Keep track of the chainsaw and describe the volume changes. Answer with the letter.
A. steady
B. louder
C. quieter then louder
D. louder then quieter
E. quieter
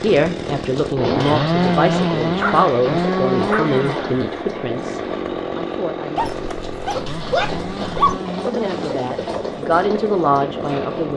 E.